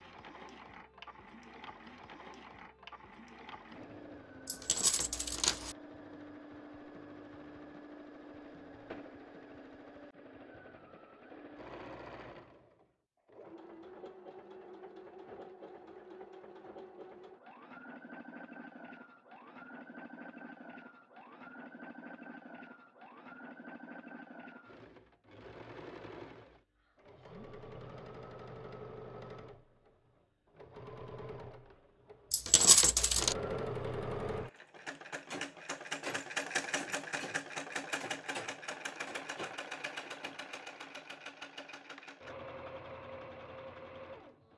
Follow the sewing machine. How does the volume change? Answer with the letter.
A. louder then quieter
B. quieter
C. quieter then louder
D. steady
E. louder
E.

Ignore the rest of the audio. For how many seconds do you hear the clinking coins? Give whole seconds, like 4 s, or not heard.
2 s.